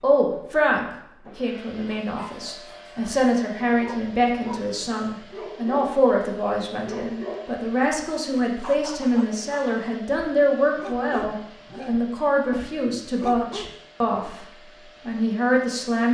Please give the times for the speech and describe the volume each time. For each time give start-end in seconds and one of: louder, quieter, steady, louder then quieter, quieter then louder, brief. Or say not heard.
0.0-14.4 steady
15.1-16.0 brief.